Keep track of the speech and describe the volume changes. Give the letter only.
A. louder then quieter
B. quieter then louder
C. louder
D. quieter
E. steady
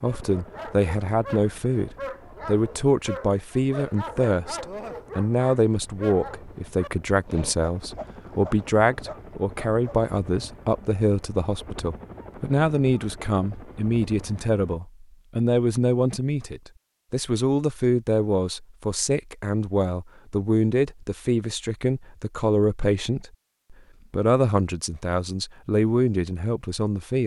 E.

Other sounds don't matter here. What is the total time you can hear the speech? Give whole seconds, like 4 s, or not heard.
27 s.